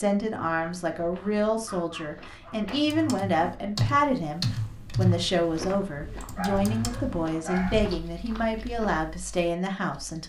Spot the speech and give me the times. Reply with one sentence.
You can hear the speech from 0.0 to 10.2 s.